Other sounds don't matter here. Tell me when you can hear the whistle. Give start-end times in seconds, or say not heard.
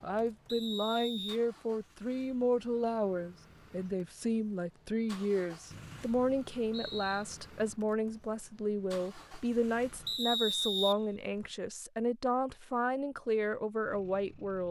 0.5-1.4, 5.7-7.2, 10.1-11.4.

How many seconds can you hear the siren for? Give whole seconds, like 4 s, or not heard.
not heard.